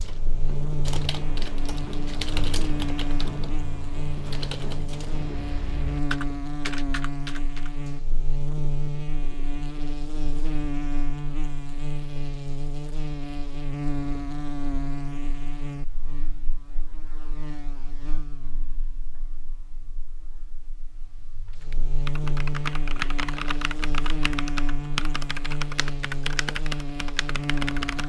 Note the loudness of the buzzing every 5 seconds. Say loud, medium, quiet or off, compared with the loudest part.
loud, loud, loud, medium, loud, loud.